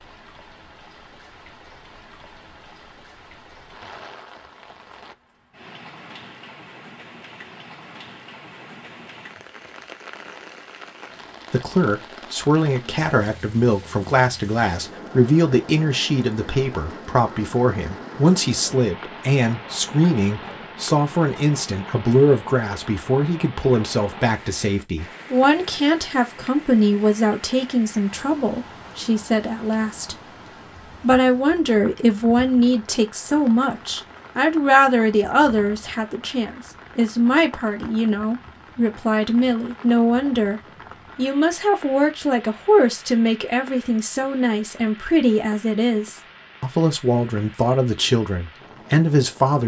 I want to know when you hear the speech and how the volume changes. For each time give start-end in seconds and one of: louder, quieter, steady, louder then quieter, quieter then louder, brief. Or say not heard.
11.5-49.6 steady.